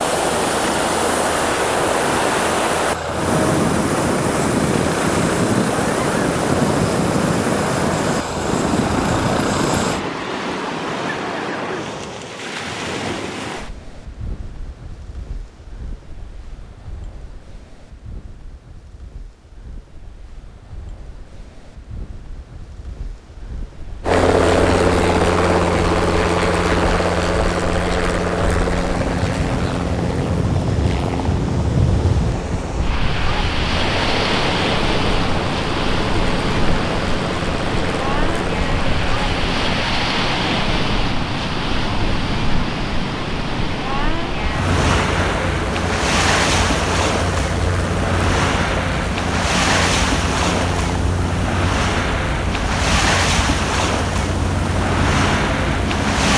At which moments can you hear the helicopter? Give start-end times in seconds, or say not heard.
0.0-10.1, 24.0-39.9, 44.6-56.3.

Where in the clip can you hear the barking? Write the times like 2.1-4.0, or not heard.
not heard.